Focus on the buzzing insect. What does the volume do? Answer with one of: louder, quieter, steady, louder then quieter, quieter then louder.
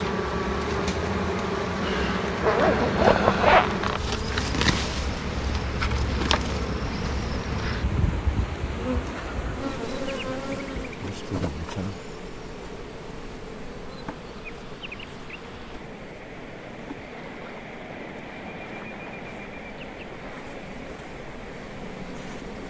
quieter.